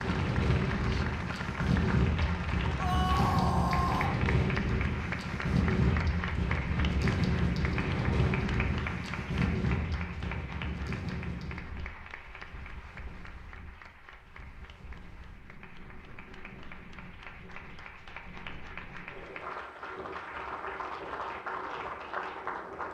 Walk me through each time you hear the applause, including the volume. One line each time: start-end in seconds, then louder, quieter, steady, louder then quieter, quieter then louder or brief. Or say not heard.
0.0-22.9 quieter then louder.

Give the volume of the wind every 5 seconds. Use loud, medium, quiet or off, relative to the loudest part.
loud, loud, quiet, quiet, quiet.